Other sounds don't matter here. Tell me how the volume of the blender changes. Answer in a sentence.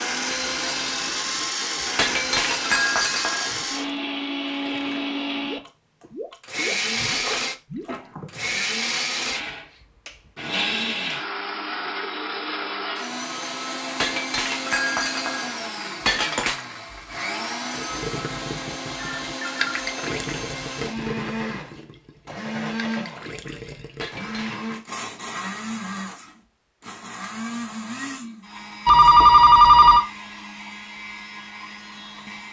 The volume of the blender goes down.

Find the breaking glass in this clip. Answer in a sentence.
The breaking glass can be heard from 1.9 to 3.6 s, from 14.0 to 16.6 s and from 24.0 to 24.6 s.